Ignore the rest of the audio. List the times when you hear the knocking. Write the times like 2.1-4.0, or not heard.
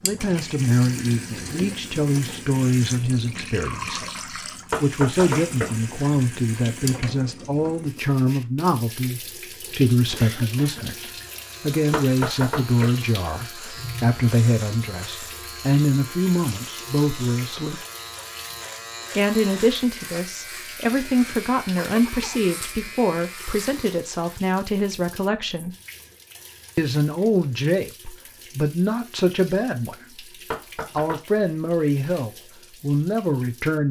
4.7-5.7, 11.9-12.9, 30.5-31.4.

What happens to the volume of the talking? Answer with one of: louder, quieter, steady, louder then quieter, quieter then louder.
steady.